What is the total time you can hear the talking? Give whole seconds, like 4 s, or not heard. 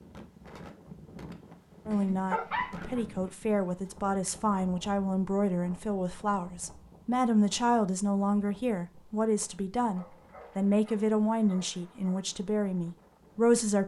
12 s.